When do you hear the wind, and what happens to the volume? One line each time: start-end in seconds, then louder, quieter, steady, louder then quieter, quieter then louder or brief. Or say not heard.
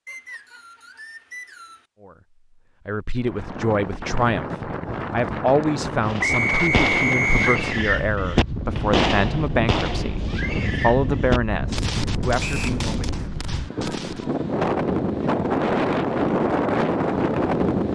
3.2-17.9 louder.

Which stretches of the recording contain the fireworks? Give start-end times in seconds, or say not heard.
6.0-14.3.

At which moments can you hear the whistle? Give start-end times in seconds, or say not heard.
0.1-1.9, 6.2-7.6, 12.4-12.8.